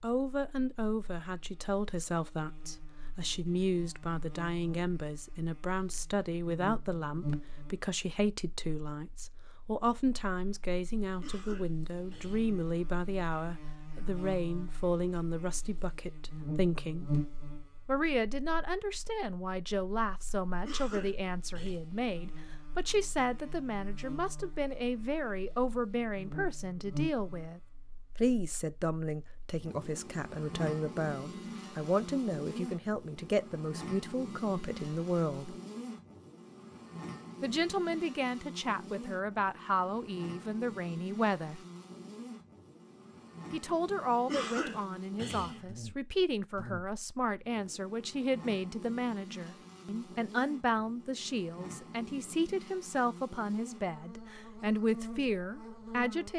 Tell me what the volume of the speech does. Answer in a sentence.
The loudness of the speech stays about the same.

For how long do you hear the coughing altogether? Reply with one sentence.
The coughing can be heard for 4 seconds in total.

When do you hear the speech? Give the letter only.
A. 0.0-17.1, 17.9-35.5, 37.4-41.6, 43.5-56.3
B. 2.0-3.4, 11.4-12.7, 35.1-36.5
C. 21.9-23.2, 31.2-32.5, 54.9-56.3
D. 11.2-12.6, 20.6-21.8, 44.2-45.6
A.